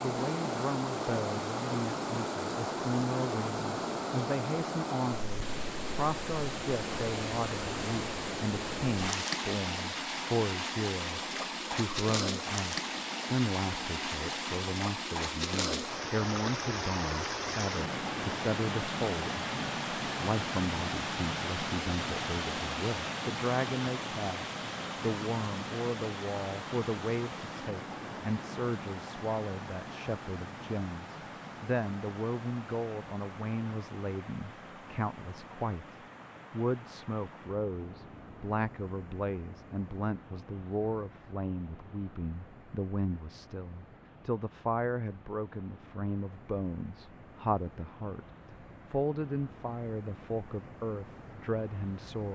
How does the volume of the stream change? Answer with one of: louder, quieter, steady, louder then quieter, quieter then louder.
quieter.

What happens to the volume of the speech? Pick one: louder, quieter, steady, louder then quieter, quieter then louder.
steady.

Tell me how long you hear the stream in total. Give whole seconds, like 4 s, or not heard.
52 s.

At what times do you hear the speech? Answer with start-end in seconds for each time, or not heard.
0.0-52.3.